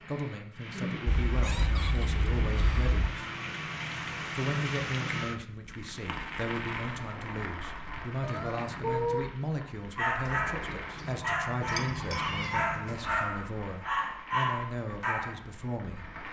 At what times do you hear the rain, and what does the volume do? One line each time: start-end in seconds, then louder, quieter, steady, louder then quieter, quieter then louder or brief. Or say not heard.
0.0-16.2 quieter.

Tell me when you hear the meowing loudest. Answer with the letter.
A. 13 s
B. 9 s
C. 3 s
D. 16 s
B.